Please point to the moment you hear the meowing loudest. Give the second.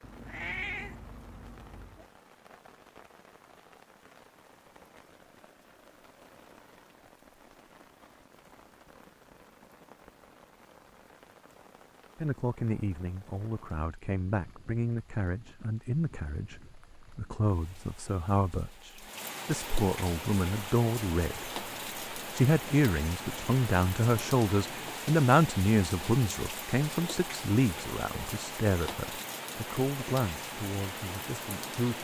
1 s.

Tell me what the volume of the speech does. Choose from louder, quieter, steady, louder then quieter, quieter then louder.
louder then quieter.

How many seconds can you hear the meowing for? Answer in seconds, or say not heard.
2 s.